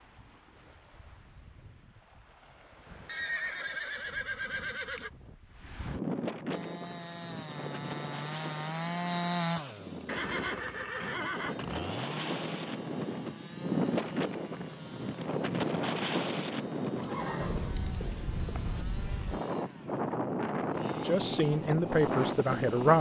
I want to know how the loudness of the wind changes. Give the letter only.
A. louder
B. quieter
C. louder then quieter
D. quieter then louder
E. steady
A.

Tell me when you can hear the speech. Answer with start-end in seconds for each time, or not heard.
21.1-22.9.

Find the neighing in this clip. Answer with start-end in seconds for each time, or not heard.
2.9-5.1, 10.1-11.8, 16.9-18.9.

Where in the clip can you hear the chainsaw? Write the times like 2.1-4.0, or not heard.
6.5-22.9.